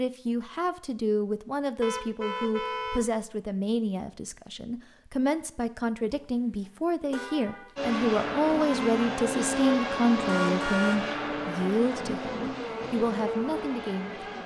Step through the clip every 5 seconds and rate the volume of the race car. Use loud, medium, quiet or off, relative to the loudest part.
off, loud, loud.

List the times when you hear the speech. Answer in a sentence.
The speech can be heard from 0.0 to 14.4 s.